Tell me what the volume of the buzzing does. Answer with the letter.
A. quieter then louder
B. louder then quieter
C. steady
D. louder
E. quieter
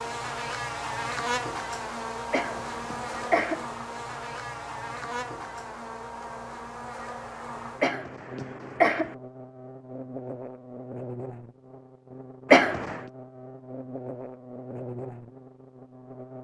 E.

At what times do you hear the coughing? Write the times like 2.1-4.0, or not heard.
2.3-3.6, 7.8-9.2, 12.5-13.0.